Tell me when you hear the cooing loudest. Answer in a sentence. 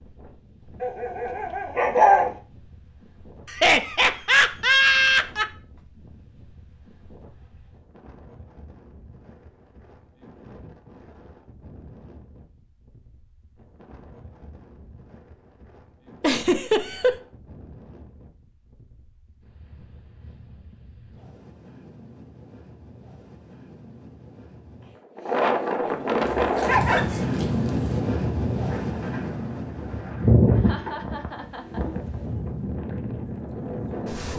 The volume of the cooing peaks at 30 seconds.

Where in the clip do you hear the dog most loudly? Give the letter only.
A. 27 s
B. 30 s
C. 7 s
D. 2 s
D.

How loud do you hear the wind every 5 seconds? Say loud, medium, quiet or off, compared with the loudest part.
quiet, quiet, quiet, quiet, quiet, loud, medium.